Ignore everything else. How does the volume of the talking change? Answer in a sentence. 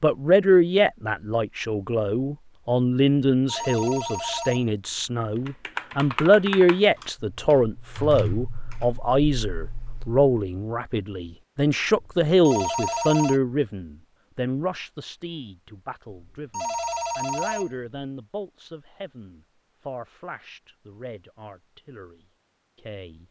The volume of the talking goes down.